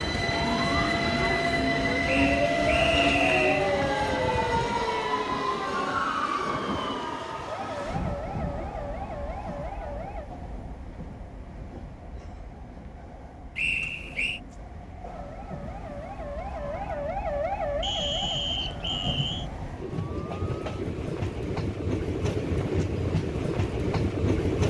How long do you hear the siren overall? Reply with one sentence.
You can hear the siren for 16 seconds altogether.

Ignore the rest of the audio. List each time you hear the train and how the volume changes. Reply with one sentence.
The train can be heard from 0.0 to 24.6 s, getting quieter then louder.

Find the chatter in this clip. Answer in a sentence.
The chatter can't be heard in this clip.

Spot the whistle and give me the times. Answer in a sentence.
The whistle can be heard from 2.0 to 3.7 s, from 13.6 to 14.4 s and from 17.8 to 19.4 s.